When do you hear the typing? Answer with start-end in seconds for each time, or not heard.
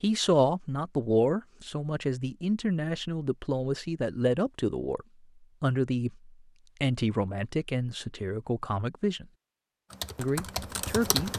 9.9-11.3.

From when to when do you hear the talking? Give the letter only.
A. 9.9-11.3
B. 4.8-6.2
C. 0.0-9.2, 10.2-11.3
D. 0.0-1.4
C.